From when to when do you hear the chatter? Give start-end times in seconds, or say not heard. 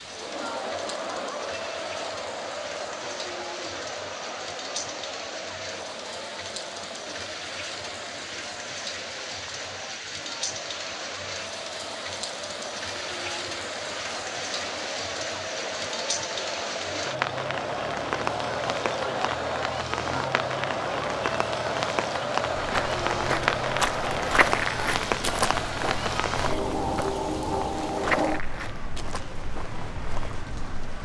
0.0-24.6.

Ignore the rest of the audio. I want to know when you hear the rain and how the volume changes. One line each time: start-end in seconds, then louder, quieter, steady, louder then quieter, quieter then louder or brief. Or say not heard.
0.0-30.9 louder.